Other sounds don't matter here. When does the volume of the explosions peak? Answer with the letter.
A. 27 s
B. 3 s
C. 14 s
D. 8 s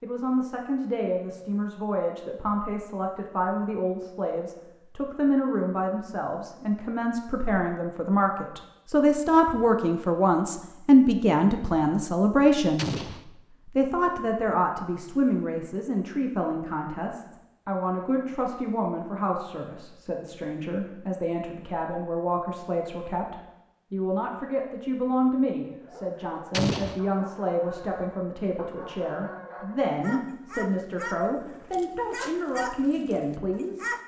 A.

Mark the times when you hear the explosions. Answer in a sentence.
The explosions can be heard from 12.8 to 13.2 s and from 26.5 to 27.0 s.